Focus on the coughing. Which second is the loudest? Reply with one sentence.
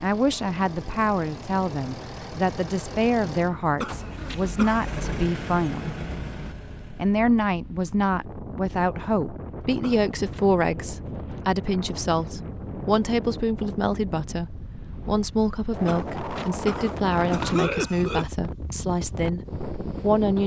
The loudest moment of the coughing is at 18 seconds.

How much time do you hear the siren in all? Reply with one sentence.
The siren can't be heard in this clip.